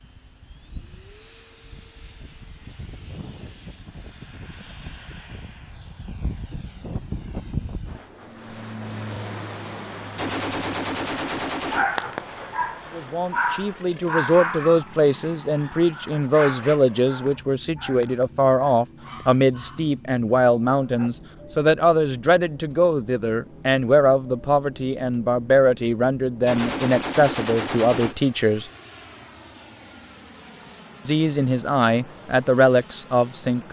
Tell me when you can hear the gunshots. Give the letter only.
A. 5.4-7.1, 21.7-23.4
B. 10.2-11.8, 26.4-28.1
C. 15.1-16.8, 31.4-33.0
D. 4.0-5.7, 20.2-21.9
B.